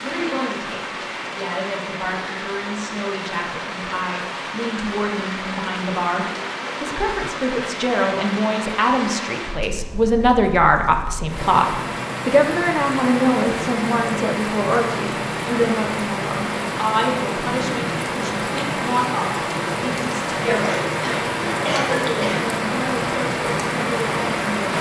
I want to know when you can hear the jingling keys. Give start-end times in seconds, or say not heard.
not heard.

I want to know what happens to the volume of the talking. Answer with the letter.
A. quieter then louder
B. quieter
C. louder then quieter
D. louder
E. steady
C.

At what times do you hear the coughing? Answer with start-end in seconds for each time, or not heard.
20.4-22.4.